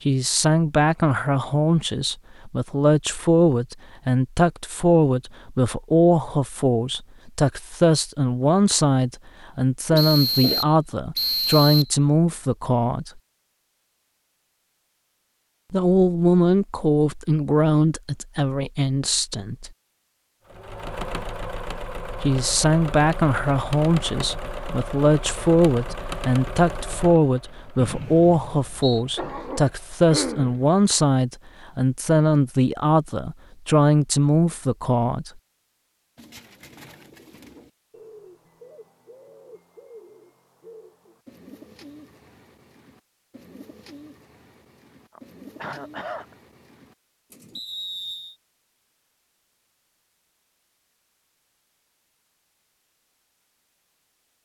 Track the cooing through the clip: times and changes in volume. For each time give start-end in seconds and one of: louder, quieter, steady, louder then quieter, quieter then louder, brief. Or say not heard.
36.1-47.6 steady.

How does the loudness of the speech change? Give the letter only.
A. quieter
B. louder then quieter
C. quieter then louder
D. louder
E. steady
E.